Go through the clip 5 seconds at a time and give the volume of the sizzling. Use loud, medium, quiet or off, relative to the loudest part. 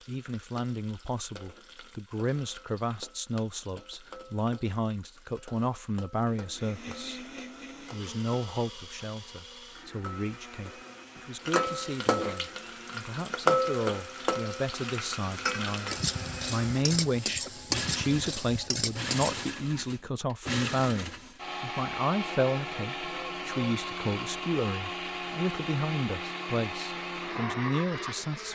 quiet, quiet, loud, loud, off, off.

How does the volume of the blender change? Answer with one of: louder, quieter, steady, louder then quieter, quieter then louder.
louder.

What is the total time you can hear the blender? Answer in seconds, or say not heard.
22 s.